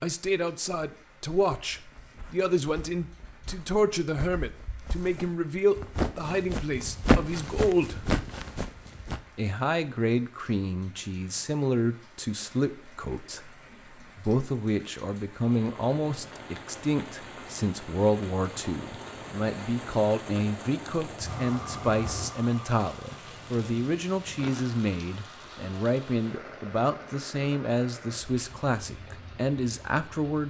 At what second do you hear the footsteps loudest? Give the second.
7 s.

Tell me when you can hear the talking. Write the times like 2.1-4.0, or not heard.
0.0-8.1, 9.3-30.4.